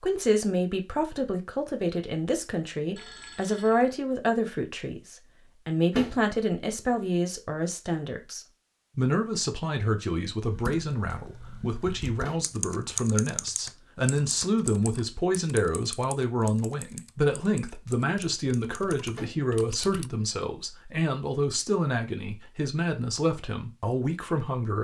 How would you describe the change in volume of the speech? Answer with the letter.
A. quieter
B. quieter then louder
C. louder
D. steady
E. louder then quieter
D.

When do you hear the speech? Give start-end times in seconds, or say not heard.
0.0-24.8.